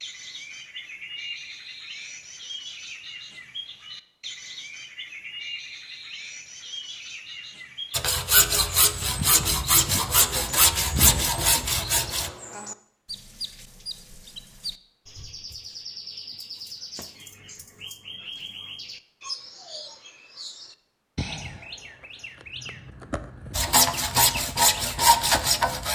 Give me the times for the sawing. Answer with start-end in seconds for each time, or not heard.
7.9-12.3, 23.5-25.8.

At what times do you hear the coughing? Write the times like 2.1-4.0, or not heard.
not heard.